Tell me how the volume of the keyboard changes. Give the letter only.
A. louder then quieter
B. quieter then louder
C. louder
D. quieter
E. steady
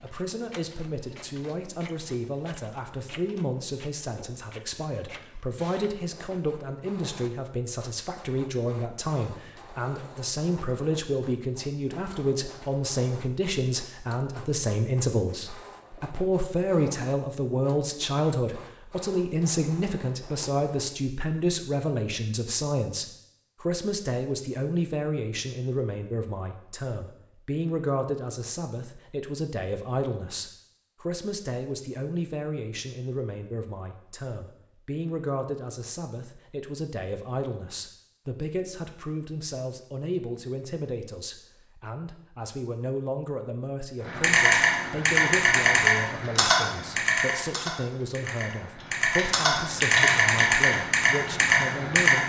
B.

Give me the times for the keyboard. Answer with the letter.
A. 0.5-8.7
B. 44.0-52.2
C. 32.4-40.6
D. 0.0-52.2
B.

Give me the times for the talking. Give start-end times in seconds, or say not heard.
0.0-52.2.